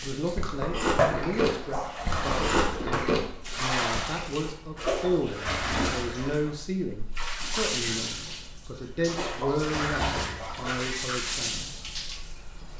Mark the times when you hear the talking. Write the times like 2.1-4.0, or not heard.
0.0-11.7.